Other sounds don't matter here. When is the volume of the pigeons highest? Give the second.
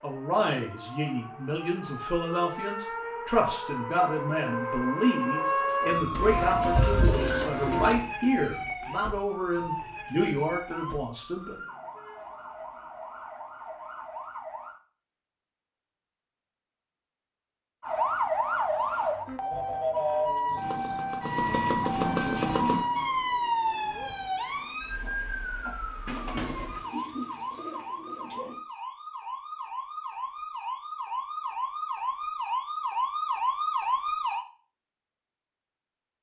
7 s.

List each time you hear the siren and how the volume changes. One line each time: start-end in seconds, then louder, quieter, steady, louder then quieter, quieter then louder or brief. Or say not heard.
0.0-14.8 louder then quieter
17.8-34.5 quieter then louder.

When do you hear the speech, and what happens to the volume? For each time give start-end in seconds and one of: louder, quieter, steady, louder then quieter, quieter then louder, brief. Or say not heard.
0.0-11.6 steady.